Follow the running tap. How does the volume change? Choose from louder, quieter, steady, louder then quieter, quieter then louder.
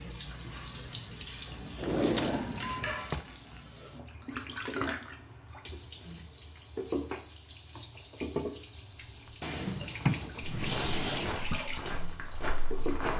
steady.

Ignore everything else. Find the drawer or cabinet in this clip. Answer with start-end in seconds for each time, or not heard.
1.8-3.2, 9.4-11.4.